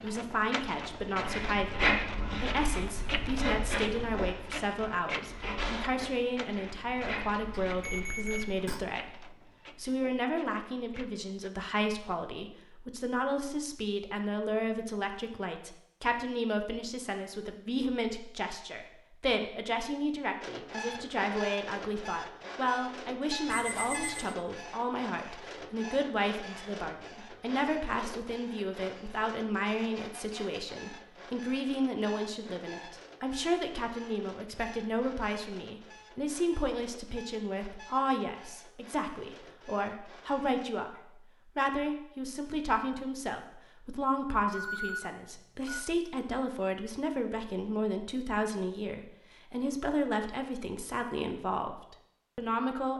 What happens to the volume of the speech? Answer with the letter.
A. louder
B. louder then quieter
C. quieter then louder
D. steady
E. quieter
D.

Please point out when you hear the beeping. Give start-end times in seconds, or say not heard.
7.7-8.8, 23.4-24.4, 44.5-45.8.